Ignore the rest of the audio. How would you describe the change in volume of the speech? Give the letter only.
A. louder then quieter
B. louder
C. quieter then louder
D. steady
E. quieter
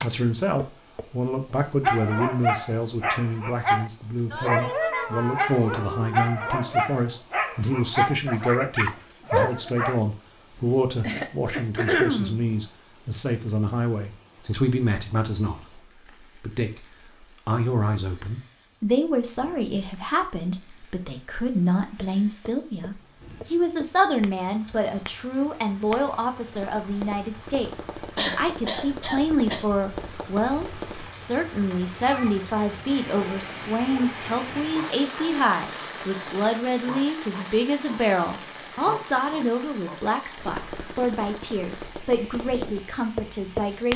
D.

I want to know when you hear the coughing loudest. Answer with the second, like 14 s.
12 s.